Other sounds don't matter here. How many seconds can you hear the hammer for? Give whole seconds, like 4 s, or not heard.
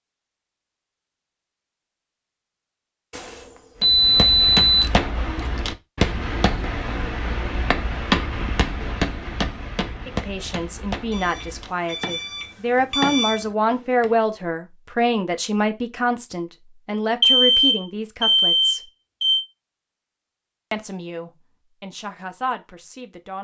10 s.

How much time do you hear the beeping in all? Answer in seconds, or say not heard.
6 s.